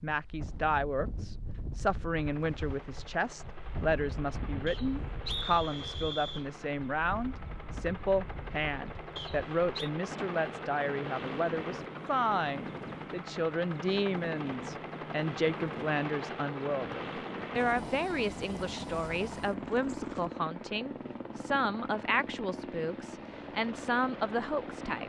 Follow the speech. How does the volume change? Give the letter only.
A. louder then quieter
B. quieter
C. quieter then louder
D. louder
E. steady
E.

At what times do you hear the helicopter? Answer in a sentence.
You can hear the helicopter from 2.1 to 25.0 s.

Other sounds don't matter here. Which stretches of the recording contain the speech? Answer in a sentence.
You can hear the speech from 0.0 to 25.0 s.